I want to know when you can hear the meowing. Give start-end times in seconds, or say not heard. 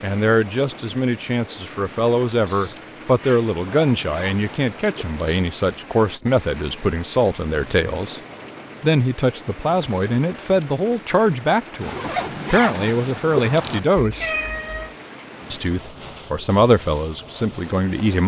2.5-3.5, 14.0-14.9.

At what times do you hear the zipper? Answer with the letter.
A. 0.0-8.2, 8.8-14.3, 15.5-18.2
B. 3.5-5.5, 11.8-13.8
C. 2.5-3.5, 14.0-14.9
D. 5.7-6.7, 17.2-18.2
B.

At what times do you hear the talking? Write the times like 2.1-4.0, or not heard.
0.0-8.2, 8.8-14.3, 15.5-18.2.